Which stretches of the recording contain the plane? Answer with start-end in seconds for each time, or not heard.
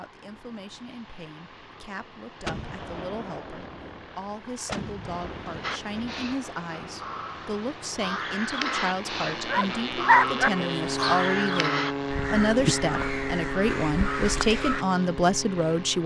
0.0-16.0.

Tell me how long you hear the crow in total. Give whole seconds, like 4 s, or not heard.
9 s.